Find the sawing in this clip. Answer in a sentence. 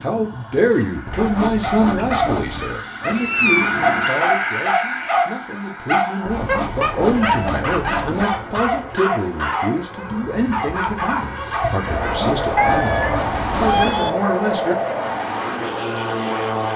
You can hear the sawing from 1.1 to 2.8 s, from 6.2 to 8.2 s and from 11.9 to 13.9 s.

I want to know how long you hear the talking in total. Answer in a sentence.
The talking can be heard for 15 seconds in total.